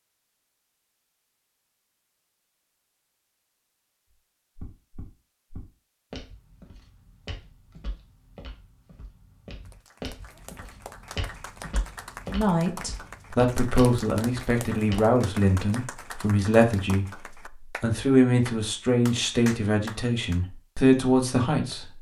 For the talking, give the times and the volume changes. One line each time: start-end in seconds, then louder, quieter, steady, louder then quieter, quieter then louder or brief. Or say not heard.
12.3-21.9 steady.